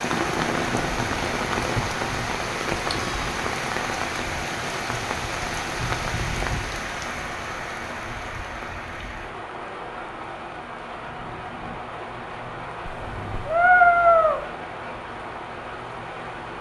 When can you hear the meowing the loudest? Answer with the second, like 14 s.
14 s.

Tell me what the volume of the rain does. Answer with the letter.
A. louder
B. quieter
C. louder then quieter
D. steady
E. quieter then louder
B.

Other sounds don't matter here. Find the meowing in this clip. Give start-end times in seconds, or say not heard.
2.9-3.5, 12.8-14.4.